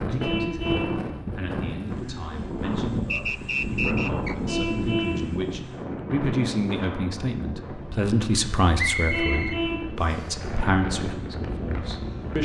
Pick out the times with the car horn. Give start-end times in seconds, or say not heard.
0.2-1.0, 4.5-5.2, 9.1-9.9.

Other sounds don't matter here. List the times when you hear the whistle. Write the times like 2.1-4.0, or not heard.
3.1-4.3, 8.8-10.3.